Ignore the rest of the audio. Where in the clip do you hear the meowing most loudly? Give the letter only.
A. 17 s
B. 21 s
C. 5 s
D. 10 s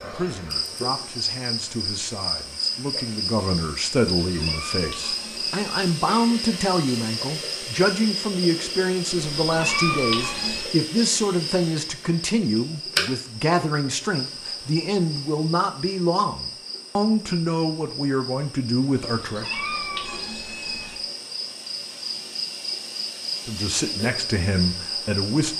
D.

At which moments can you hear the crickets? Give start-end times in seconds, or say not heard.
0.0-25.5.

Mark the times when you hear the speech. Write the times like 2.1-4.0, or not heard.
0.0-19.4, 23.4-25.5.